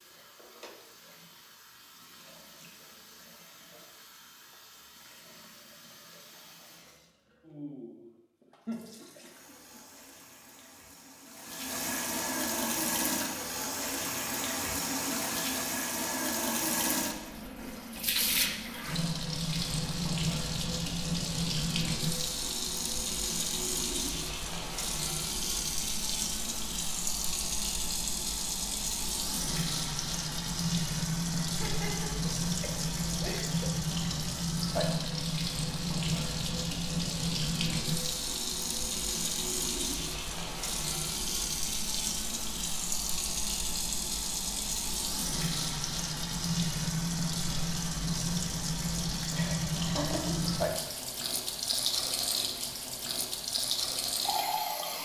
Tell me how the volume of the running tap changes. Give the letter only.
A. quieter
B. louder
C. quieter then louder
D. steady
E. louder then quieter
B.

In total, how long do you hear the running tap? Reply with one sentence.
The running tap can be heard for 55 seconds in total.